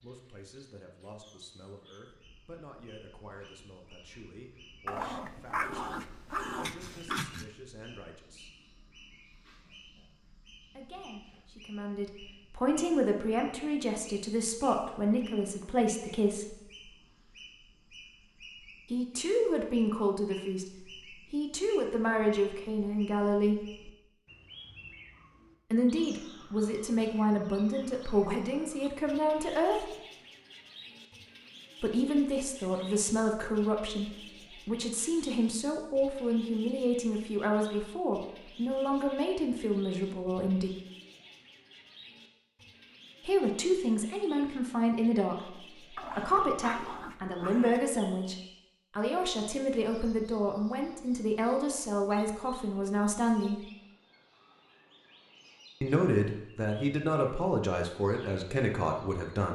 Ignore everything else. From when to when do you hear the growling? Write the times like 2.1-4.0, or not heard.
4.8-7.5, 46.0-47.8.